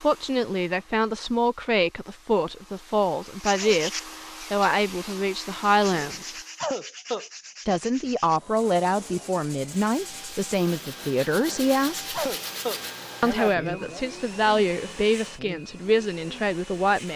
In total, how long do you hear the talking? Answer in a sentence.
The talking can be heard for 15 seconds in total.